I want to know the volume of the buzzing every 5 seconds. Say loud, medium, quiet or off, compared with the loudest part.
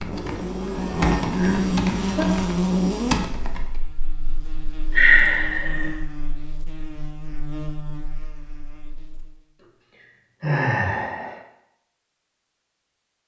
loud, quiet, off.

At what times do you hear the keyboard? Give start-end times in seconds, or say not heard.
0.0-3.8.